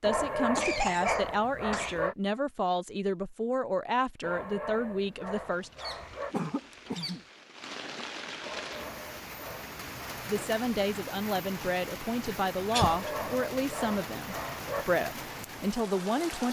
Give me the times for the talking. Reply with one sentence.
You can hear the talking from 0.0 to 5.7 s and from 10.2 to 16.4 s.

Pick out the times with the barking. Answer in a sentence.
The barking can be heard from 0.0 to 2.1 s, from 4.2 to 6.3 s, from 8.4 to 10.2 s and from 12.8 to 14.8 s.